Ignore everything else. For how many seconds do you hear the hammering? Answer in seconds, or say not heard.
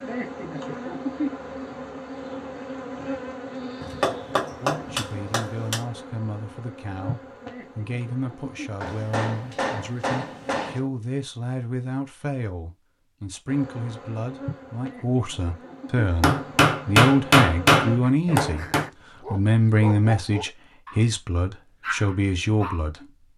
7 s.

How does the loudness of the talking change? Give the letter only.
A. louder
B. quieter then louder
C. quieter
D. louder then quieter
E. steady
A.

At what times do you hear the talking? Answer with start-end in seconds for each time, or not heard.
4.6-23.2.